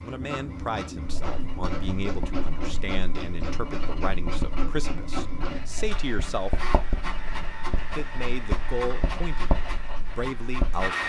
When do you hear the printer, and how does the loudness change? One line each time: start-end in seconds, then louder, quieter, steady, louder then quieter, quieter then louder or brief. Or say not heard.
0.0-11.0 steady.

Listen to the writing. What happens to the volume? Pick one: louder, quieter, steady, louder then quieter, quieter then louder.
louder.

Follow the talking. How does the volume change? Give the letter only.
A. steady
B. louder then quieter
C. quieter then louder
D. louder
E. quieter
A.